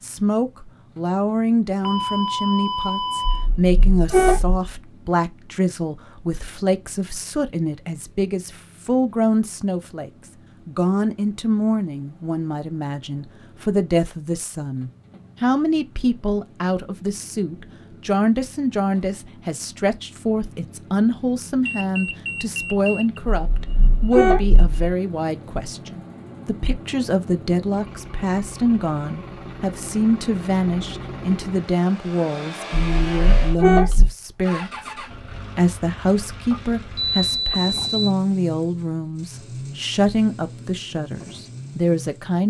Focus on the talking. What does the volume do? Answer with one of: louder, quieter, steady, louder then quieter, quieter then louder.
steady.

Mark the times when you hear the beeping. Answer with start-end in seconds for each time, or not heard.
1.8-3.5, 21.6-23.2, 36.5-38.1.